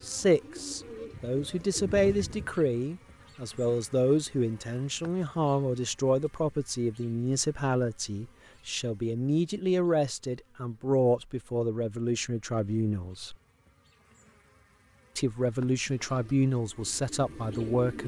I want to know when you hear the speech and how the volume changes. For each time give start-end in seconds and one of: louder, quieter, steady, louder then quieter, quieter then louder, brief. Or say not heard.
0.0-13.3 steady
15.2-18.0 brief.